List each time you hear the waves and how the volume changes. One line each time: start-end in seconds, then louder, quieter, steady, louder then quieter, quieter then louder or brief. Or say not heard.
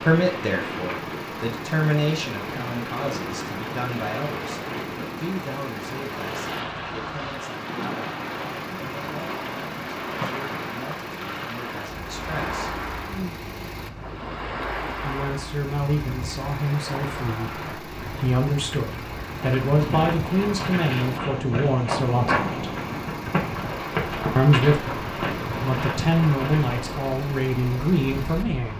0.0-28.7 steady.